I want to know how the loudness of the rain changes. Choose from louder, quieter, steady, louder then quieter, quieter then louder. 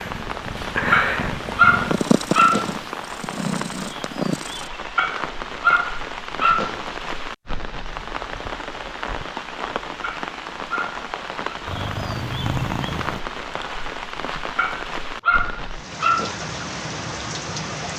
steady.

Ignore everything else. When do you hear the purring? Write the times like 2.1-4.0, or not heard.
0.0-4.7, 11.7-13.2.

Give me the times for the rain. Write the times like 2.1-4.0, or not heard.
0.0-17.9.